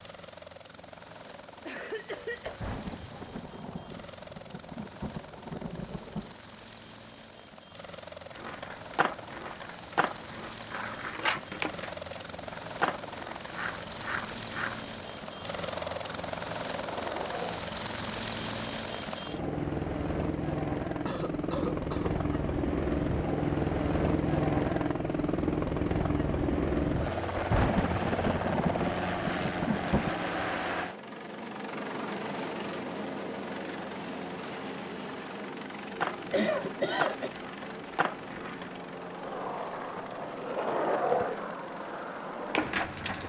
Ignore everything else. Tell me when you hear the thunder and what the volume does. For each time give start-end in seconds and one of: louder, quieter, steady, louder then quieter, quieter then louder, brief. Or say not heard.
2.3-6.3 quieter then louder
27.2-30.1 brief.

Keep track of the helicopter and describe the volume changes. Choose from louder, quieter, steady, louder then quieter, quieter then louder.
louder then quieter.